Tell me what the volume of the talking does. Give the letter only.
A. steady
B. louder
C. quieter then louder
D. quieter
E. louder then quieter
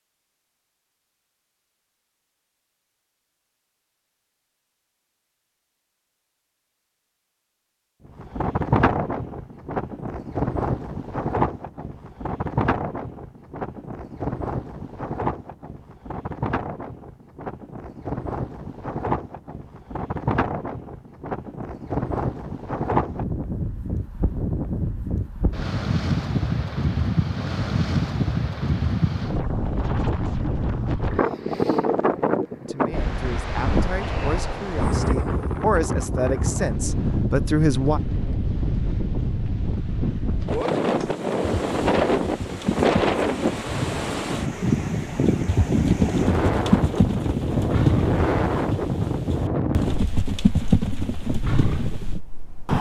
B.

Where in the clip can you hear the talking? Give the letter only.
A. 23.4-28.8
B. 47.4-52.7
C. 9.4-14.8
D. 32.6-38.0
D.